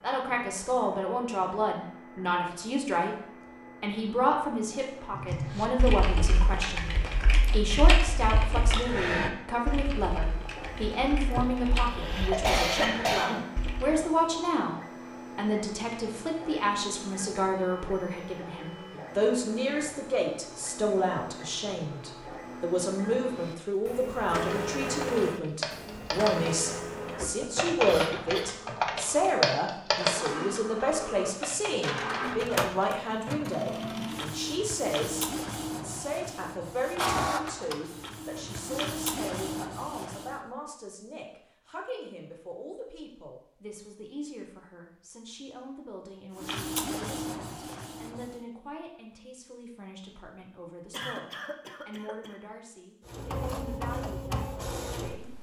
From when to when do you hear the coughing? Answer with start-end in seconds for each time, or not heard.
11.3-13.7, 27.9-28.5, 50.9-52.3.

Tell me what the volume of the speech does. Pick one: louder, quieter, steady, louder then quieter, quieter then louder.
quieter.